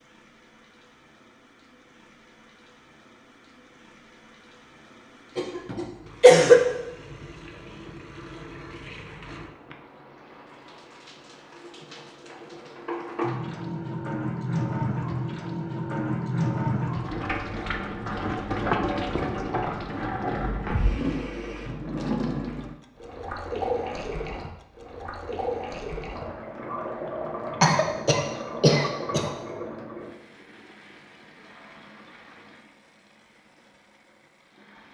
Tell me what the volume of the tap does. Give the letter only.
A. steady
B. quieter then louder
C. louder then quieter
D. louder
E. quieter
C.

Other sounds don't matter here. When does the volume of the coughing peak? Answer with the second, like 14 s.
6 s.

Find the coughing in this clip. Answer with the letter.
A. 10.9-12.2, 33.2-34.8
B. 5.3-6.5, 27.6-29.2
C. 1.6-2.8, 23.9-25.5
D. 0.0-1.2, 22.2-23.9
B.